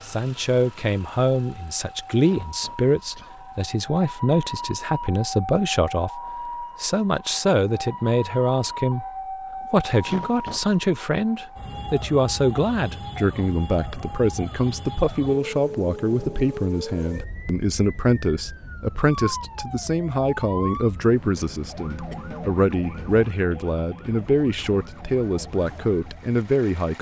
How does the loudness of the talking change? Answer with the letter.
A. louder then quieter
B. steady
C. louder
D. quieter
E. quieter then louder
B.